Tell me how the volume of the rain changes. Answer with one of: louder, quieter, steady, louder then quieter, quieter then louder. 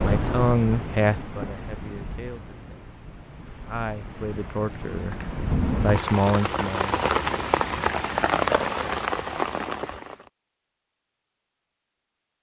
quieter then louder.